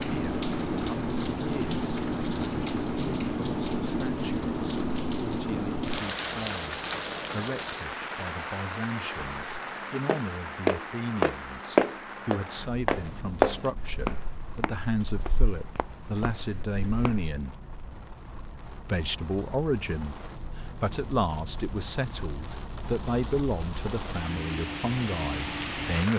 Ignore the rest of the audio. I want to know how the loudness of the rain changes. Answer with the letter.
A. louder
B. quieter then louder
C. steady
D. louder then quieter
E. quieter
B.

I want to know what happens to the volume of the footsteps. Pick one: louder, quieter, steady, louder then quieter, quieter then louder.
quieter.